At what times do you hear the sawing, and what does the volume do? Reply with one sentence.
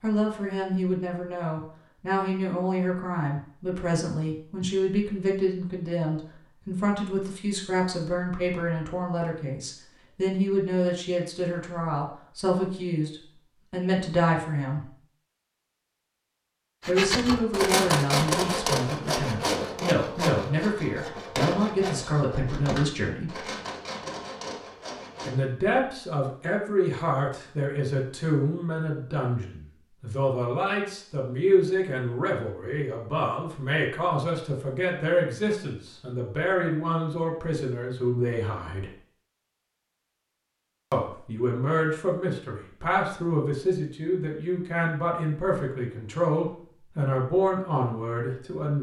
You can hear the sawing from 16.9 to 25.4 s, getting quieter.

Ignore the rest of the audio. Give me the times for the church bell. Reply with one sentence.
You can't hear the church bell here.